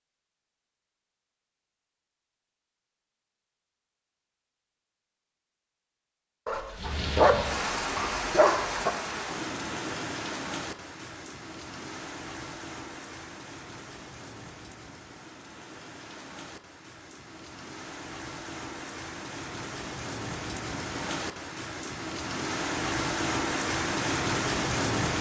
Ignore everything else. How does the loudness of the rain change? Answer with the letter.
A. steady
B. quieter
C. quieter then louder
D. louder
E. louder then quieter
C.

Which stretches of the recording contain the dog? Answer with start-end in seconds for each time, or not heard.
6.5-8.9.